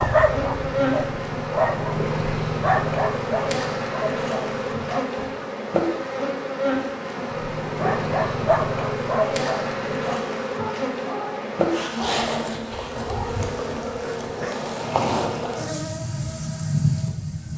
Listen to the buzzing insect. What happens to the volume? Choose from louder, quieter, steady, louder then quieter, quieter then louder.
steady.